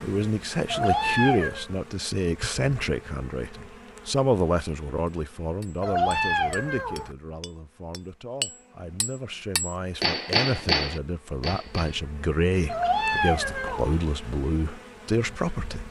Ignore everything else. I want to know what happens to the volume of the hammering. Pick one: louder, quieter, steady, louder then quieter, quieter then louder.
louder.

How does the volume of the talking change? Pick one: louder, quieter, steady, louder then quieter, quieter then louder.
quieter then louder.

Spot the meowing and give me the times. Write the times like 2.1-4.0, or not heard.
0.7-1.6, 5.8-7.2, 12.7-14.0.